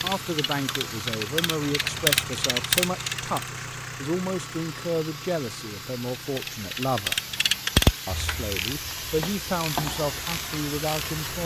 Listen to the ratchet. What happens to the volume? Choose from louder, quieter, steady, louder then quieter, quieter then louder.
louder then quieter.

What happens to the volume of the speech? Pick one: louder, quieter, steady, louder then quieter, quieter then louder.
steady.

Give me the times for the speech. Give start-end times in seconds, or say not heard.
0.0-7.2, 8.1-11.4.